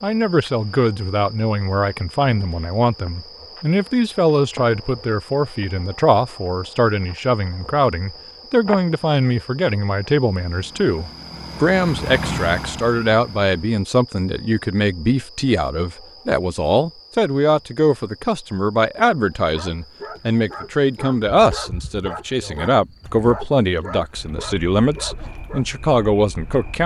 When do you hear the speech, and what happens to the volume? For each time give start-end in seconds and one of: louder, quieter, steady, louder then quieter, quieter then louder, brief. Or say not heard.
0.0-26.8 steady.